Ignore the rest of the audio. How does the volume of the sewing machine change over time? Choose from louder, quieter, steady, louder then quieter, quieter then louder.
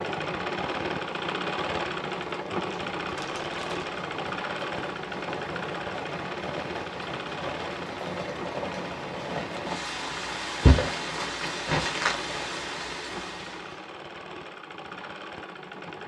quieter.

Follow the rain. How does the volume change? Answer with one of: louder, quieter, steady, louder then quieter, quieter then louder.
louder.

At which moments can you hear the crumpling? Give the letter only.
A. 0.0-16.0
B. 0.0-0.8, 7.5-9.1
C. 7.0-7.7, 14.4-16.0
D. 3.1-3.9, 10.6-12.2
D.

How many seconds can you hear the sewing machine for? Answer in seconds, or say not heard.
16 s.